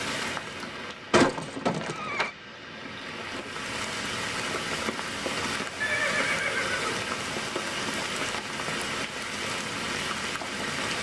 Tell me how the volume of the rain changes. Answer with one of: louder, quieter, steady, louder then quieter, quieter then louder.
louder.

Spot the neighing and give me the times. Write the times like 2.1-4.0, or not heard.
1.1-2.3, 5.8-7.0.